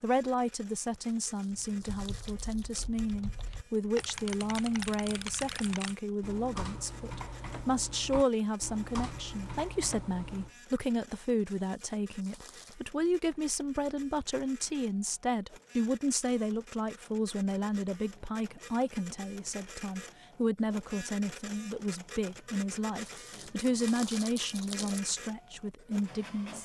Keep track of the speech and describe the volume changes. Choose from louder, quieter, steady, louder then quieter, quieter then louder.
steady.